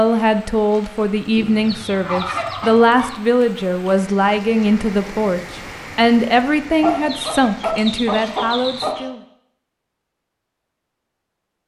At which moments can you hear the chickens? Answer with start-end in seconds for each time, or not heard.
1.4-3.1, 6.8-9.1.